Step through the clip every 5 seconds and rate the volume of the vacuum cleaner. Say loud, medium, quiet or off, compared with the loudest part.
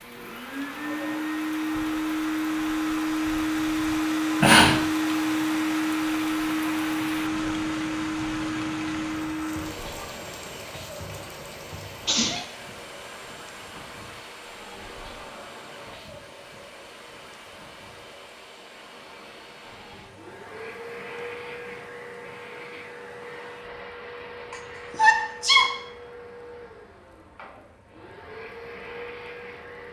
loud, loud, quiet, quiet, quiet, quiet.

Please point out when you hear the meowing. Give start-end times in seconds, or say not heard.
not heard.